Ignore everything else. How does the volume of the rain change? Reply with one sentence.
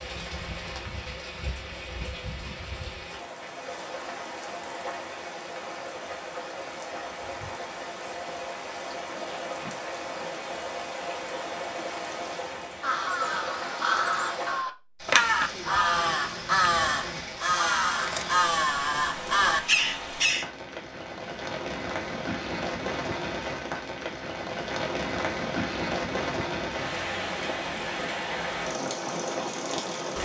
The volume of the rain goes up.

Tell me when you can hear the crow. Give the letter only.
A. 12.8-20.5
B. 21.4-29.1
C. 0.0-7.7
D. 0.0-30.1
A.